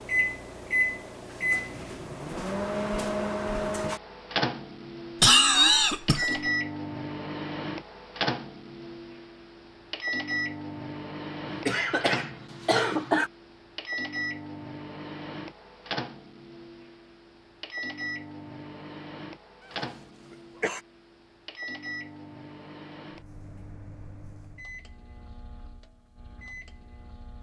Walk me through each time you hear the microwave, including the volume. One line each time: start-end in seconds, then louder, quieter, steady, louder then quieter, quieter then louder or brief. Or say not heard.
0.0-27.3 quieter.